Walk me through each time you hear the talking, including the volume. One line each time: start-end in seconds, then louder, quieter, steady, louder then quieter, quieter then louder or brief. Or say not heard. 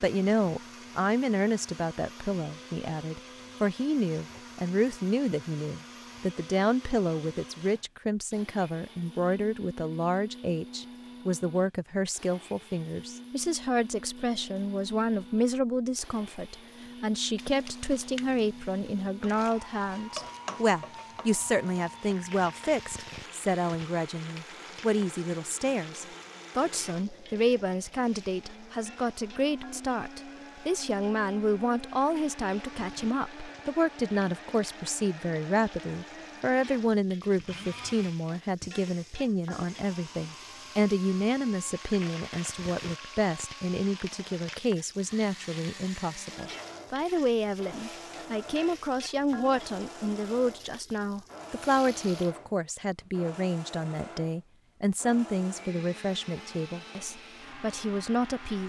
0.0-58.6 steady.